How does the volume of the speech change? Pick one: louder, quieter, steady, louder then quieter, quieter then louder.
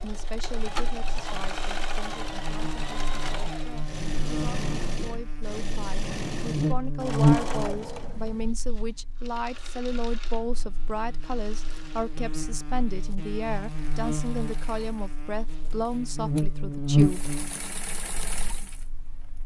louder.